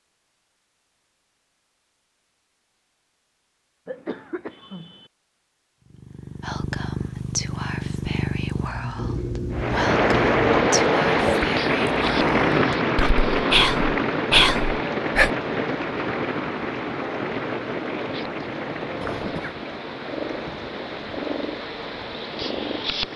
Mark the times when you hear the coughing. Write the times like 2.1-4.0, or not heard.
3.9-5.1, 19.0-19.6.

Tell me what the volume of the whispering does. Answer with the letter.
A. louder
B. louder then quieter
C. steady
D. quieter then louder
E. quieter
A.